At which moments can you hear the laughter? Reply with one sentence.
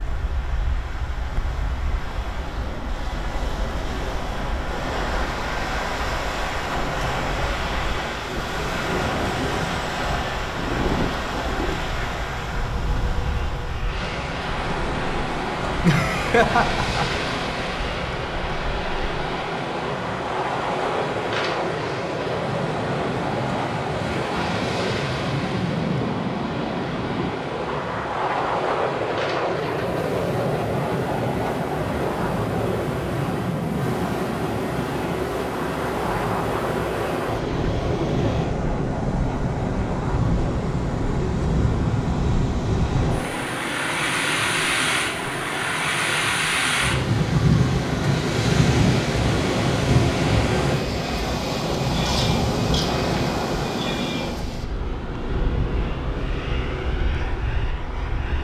The laughter can be heard from 15.8 to 17.1 s.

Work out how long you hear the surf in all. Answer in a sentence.
The surf can be heard for 58 seconds in total.